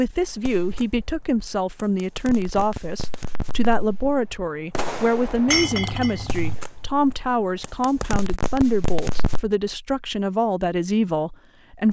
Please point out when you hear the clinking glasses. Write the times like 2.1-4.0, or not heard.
5.5-6.5.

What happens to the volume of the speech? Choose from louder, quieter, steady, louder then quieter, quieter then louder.
steady.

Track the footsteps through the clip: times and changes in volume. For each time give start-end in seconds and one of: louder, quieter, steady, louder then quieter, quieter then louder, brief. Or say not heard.
not heard.